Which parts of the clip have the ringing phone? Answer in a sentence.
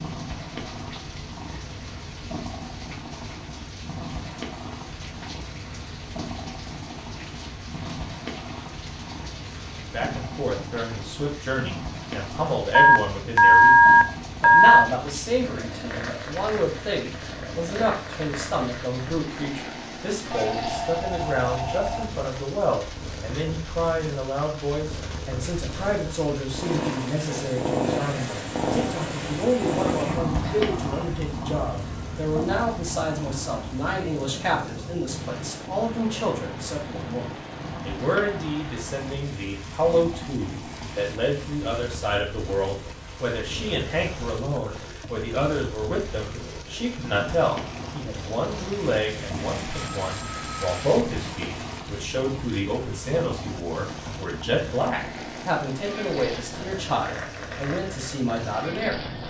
The ringing phone can be heard from 12.7 to 14.8 s, from 20.3 to 22.3 s and from 50.0 to 50.8 s.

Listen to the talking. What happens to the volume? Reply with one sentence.
The loudness of the talking stays about the same.